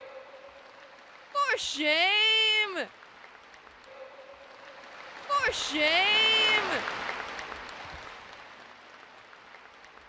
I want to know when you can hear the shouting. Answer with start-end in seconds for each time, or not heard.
1.3-2.9, 5.2-6.8.